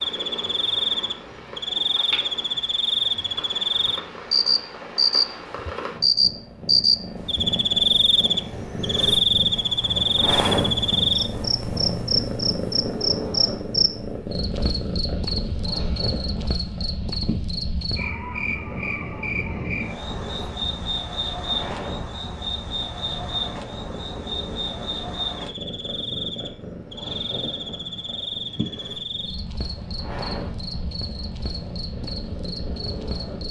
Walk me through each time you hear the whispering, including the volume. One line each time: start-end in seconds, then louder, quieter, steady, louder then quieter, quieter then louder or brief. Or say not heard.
not heard.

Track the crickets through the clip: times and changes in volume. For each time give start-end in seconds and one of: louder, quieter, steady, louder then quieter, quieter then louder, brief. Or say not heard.
0.0-33.4 quieter.